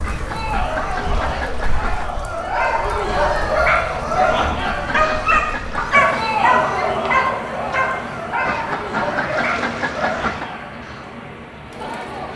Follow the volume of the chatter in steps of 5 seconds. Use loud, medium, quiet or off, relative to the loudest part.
loud, loud, medium.